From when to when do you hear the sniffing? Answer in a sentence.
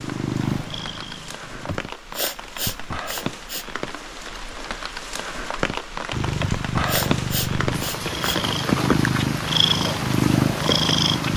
The sniffing can be heard from 1.6 to 3.9 s and from 6.4 to 8.5 s.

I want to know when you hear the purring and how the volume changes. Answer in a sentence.
The purring can be heard briefly from 0.0 to 1.8 s; and from 6.1 to 11.3 s, getting louder.